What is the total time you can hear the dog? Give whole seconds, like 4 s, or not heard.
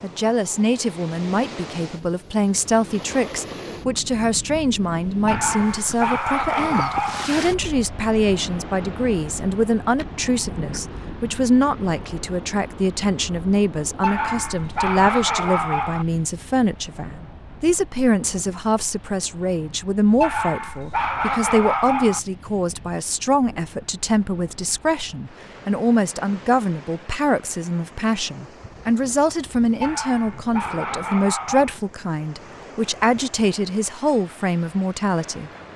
8 s.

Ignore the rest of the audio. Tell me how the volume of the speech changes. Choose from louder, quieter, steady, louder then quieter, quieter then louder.
steady.